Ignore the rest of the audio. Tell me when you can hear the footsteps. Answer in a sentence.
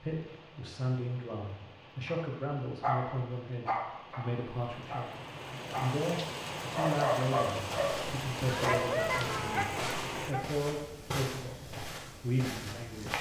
The footsteps can be heard from 7.5 to 13.1 s.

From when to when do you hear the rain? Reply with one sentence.
The rain can be heard from 0.0 to 10.3 s.